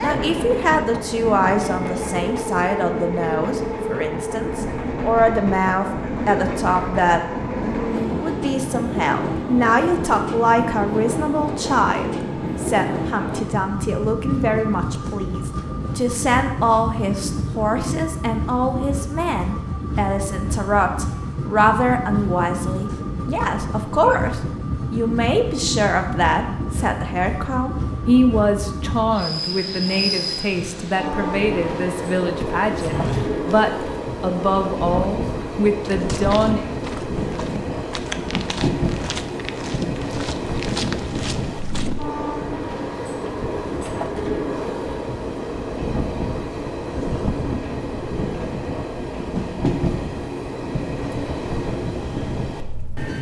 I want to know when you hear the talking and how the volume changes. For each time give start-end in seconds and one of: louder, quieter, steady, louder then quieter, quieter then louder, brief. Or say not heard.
0.0-36.6 steady.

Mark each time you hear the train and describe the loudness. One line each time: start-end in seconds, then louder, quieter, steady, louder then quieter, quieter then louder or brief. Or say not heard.
0.0-53.1 steady.